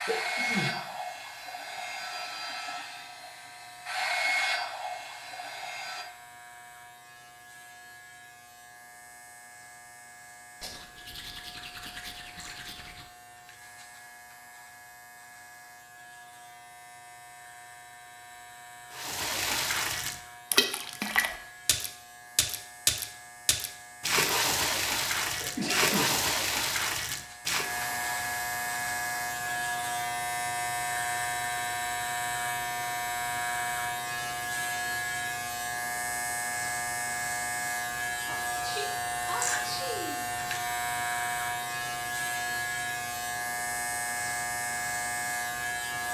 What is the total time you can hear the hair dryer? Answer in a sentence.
The hair dryer can be heard for 6 seconds in total.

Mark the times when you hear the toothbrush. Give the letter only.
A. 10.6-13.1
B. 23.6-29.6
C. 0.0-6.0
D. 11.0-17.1
A.